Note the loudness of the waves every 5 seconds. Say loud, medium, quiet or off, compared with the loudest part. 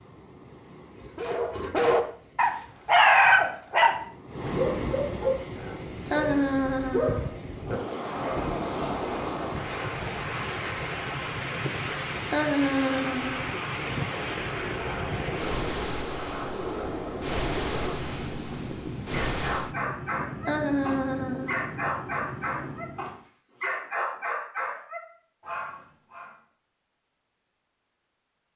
medium, loud, loud, loud, off, off.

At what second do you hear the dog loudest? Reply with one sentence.
The loudest moment of the dog is at 3 seconds.